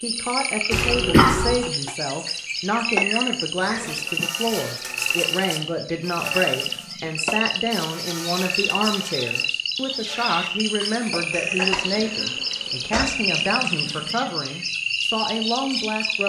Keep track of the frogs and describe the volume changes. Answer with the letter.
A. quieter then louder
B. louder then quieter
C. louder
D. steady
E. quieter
D.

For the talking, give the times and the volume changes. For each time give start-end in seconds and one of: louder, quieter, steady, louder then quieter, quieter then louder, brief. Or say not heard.
0.0-16.2 steady.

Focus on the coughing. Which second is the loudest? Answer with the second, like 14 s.
1 s.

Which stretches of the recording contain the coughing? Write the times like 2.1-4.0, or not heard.
0.7-1.6, 11.3-13.1.